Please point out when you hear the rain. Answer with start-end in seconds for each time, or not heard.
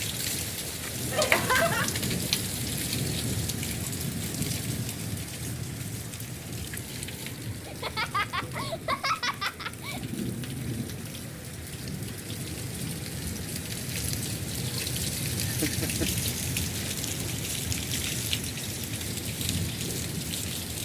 0.0-20.8.